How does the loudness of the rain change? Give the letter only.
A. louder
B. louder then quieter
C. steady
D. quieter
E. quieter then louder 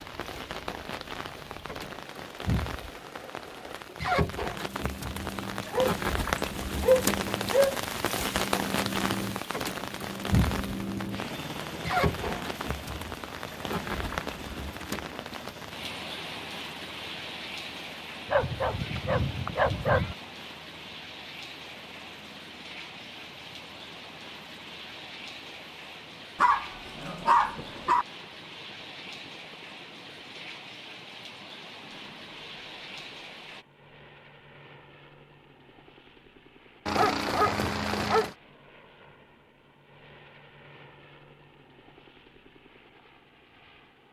D.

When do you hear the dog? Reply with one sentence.
The dog can be heard from 5.7 to 7.8 s, from 18.2 to 20.1 s, from 26.4 to 28.1 s and from 36.9 to 38.4 s.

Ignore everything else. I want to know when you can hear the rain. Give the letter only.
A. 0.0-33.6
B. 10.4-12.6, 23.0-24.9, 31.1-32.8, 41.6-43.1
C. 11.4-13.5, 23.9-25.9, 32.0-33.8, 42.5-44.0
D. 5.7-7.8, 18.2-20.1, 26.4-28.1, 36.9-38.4
A.